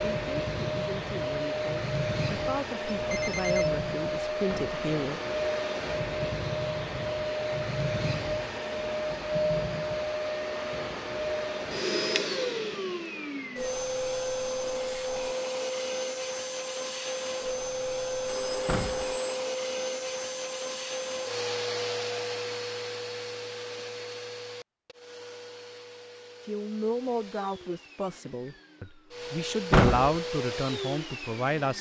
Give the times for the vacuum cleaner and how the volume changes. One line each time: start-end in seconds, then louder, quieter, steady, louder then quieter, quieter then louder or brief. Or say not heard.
0.0-31.7 quieter.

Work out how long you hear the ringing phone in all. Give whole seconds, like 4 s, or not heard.
2 s.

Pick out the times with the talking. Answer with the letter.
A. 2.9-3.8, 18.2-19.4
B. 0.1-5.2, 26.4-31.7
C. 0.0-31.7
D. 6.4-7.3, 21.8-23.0
B.